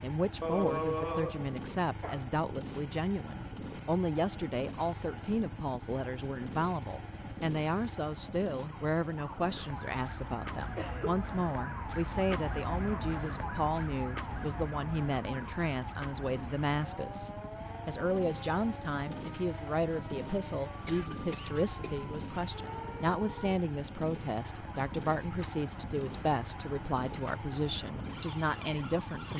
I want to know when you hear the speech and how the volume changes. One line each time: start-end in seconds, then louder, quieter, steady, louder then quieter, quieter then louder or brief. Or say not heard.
0.0-29.3 steady.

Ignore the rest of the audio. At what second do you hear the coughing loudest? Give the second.
1 s.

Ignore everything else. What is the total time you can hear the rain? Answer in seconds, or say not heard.
not heard.